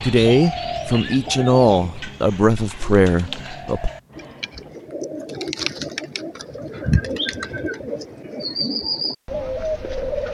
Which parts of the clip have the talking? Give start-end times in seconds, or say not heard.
0.0-3.9.